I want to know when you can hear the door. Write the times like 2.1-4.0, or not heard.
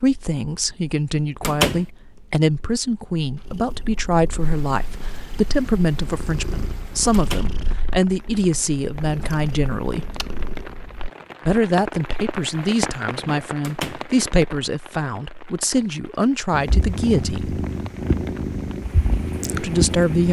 1.4-1.9, 7.1-7.5, 13.6-14.1.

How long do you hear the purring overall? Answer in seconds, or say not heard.
15 s.